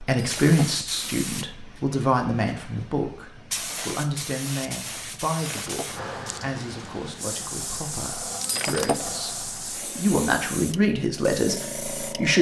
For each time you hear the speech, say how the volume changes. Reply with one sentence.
The speech can be heard from 0.0 to 12.3 s, getting quieter then louder.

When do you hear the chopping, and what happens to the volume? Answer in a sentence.
You can't hear the chopping here.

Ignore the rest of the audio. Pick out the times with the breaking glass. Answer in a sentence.
You can hear the breaking glass from 0.1 to 0.8 s, from 5.5 to 6.0 s and from 8.4 to 9.2 s.